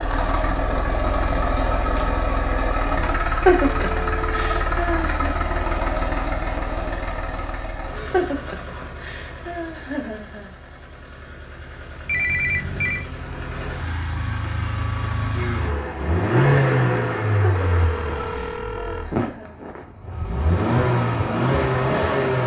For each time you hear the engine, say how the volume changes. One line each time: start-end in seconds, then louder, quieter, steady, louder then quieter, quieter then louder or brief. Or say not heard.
0.0-22.4 quieter then louder.